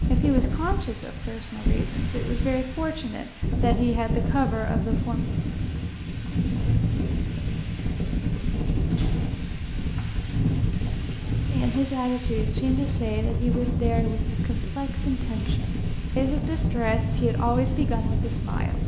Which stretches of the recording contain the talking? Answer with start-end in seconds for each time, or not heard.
0.0-5.2, 11.5-18.8.